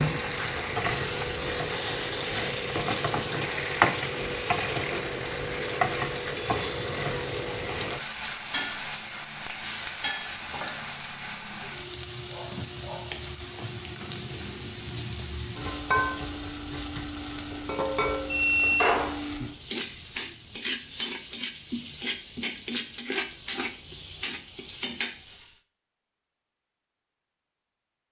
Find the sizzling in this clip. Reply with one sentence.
The sizzling can be heard from 0.0 to 25.6 s.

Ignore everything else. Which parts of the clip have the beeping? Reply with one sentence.
You can hear the beeping from 18.2 to 18.9 s.